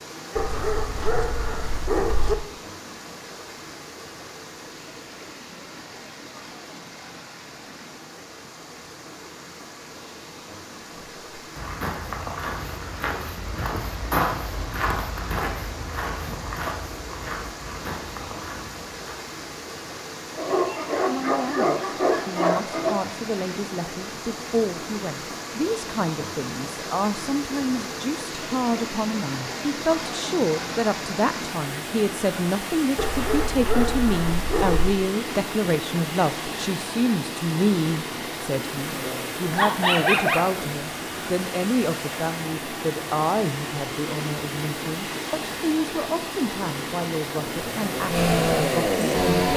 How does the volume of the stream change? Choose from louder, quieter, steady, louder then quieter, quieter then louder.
louder.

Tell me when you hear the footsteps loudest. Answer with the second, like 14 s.
14 s.